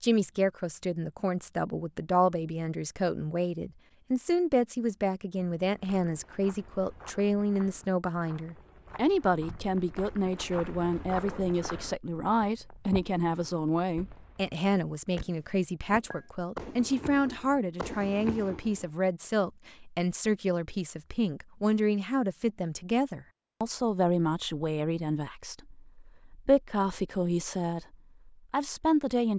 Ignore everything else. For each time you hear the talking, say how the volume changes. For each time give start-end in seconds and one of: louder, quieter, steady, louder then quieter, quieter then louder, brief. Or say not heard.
0.0-29.3 steady.